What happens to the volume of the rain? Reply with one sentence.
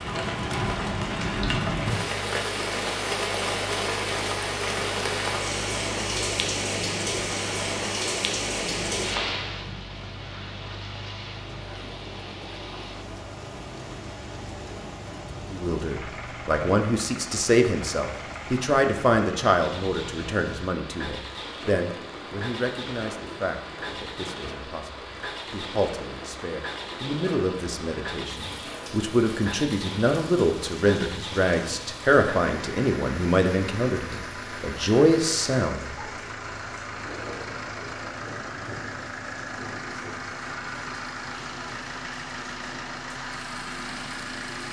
The volume of the rain goes down.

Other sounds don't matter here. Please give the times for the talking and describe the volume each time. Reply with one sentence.
The talking can be heard from 15.5 to 36.0 s, getting quieter then louder.